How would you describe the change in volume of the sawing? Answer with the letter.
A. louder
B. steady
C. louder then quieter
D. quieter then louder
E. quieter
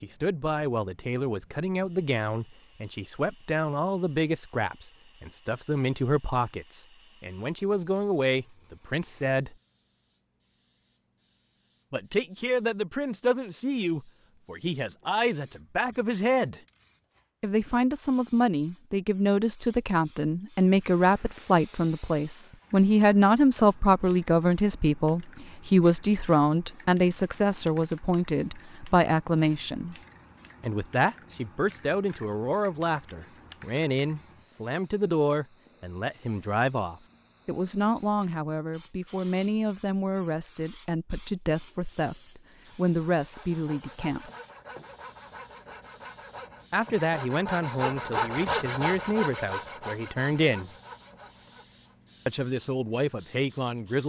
C.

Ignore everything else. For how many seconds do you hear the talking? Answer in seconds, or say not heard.
46 s.